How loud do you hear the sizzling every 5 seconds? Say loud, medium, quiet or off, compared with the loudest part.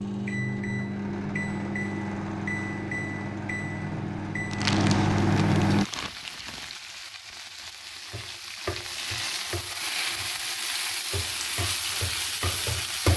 off, medium, loud.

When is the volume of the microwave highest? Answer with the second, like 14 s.
5 s.